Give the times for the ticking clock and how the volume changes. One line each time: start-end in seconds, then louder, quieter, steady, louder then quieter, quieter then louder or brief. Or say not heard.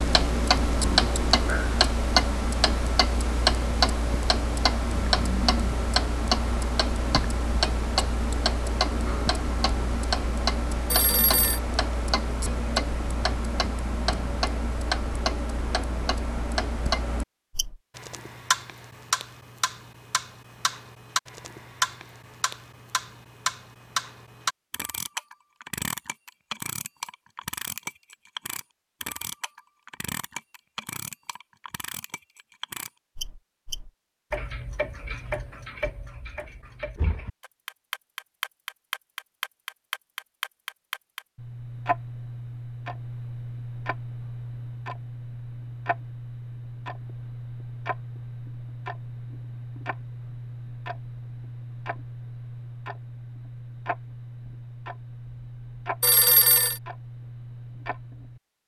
0.0-58.4 quieter.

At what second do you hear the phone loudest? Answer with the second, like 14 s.
56 s.